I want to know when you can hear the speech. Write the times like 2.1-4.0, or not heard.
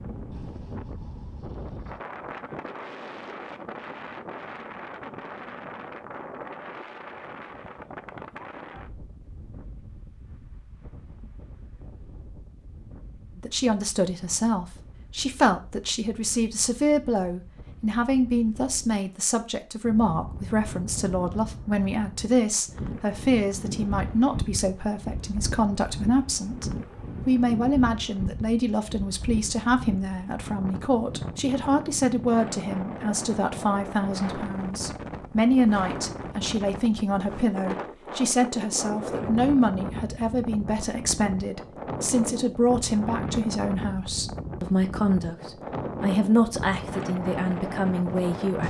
13.3-48.6.